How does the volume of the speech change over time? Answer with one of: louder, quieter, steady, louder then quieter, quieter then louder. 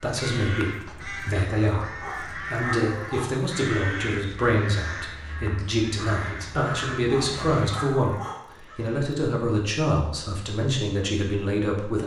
steady.